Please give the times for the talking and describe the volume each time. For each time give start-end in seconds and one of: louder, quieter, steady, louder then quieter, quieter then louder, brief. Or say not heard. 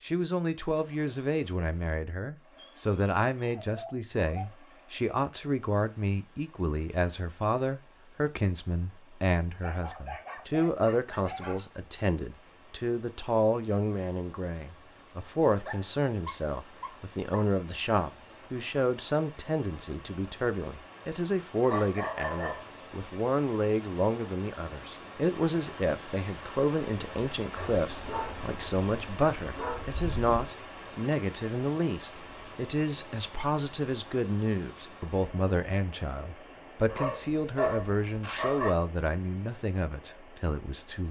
0.0-41.0 steady.